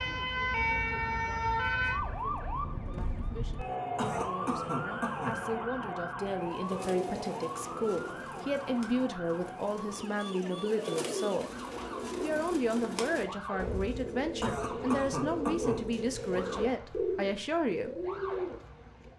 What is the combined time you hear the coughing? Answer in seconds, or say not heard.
3 s.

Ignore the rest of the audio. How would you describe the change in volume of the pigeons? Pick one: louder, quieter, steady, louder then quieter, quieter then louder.
louder.